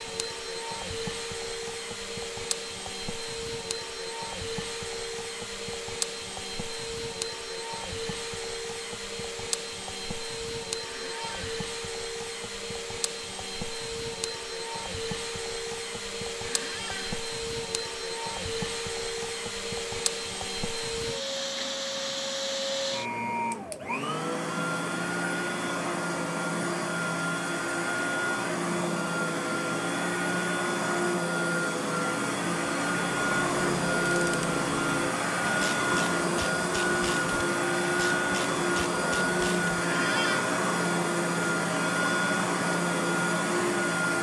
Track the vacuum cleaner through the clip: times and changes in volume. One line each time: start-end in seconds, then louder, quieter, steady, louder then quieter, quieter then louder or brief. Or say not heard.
0.0-44.1 louder.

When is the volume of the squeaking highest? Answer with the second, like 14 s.
40 s.